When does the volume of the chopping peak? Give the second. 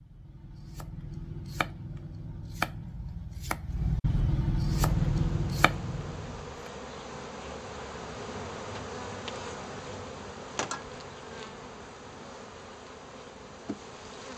5 s.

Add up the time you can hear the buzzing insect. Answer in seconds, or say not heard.
10 s.